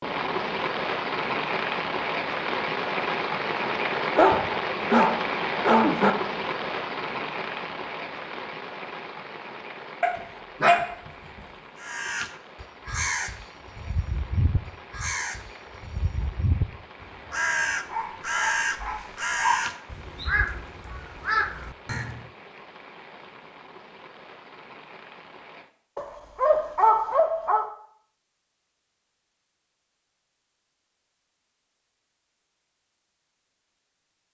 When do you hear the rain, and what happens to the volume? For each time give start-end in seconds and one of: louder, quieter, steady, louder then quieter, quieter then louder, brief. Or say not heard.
0.0-25.7 quieter.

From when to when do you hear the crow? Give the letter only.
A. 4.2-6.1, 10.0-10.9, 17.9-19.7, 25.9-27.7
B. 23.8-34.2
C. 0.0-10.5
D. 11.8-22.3
D.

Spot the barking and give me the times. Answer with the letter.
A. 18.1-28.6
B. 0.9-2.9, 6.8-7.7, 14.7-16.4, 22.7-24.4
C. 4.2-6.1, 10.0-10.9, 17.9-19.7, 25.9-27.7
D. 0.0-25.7
C.